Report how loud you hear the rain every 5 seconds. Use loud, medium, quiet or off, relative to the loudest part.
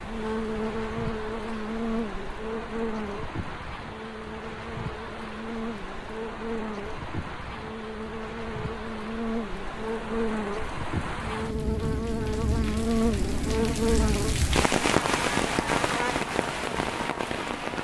medium, medium, loud, loud.